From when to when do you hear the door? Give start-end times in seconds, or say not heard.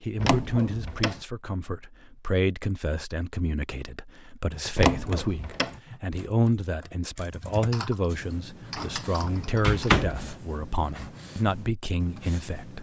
0.2-1.2, 4.8-5.8, 8.8-10.3.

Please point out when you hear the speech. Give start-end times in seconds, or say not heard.
0.0-12.7.